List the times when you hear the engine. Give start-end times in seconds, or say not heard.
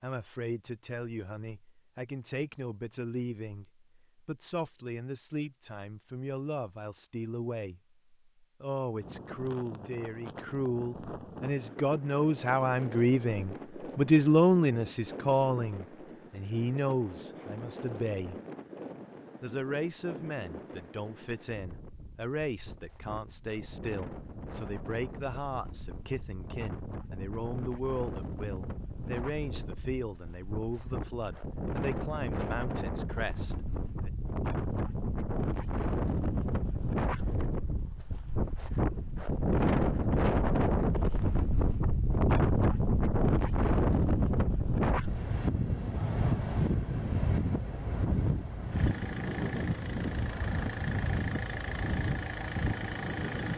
48.7-53.5.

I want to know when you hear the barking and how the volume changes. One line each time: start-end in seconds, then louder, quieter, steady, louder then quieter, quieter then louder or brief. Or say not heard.
not heard.